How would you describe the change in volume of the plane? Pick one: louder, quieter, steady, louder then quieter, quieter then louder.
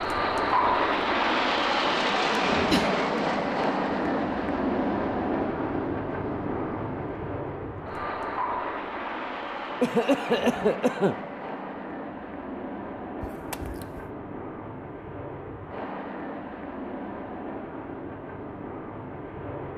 quieter.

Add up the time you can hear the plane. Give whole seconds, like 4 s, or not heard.
20 s.